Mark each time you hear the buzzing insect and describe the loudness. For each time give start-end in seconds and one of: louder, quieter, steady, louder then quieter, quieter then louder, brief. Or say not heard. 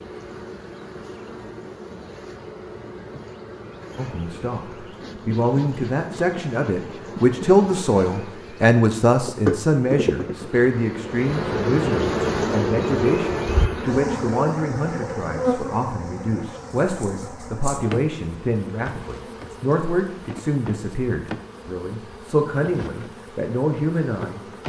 0.0-24.6 louder then quieter.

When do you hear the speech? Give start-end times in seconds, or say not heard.
4.0-24.4.